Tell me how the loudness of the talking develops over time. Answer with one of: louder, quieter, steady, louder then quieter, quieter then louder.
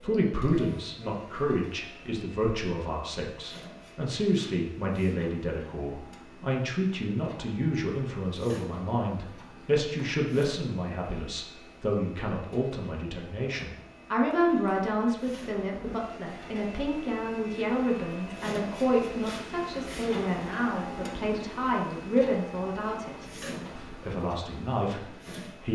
steady.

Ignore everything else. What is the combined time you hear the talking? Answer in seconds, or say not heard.
26 s.